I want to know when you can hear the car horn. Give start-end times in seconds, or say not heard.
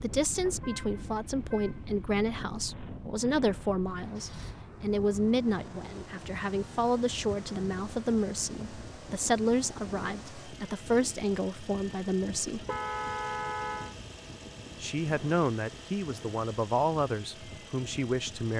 0.3-1.9, 12.7-13.9.